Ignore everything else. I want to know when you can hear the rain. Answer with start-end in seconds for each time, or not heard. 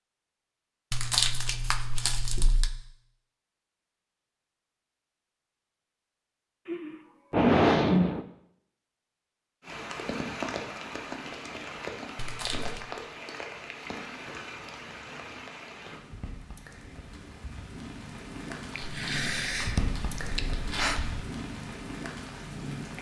9.6-22.9.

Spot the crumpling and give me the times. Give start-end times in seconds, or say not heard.
0.9-2.8, 12.2-12.8, 18.8-21.2.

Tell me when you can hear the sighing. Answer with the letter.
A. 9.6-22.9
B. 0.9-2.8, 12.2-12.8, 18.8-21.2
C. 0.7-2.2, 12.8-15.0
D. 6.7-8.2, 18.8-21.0
D.